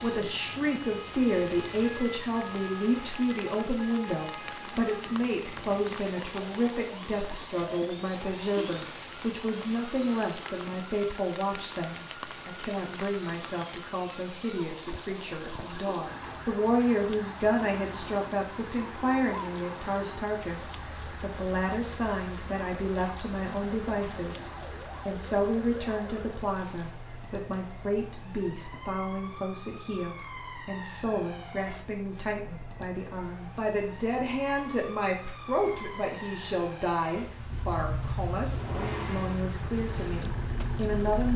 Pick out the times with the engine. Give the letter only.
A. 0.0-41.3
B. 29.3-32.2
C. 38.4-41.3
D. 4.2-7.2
C.